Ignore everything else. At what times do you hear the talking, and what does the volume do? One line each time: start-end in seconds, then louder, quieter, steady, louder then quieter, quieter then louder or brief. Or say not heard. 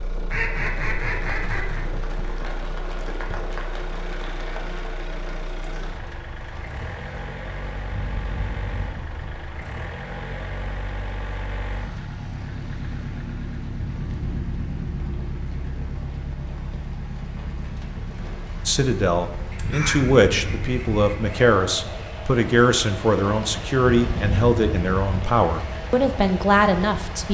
18.6-27.2 steady.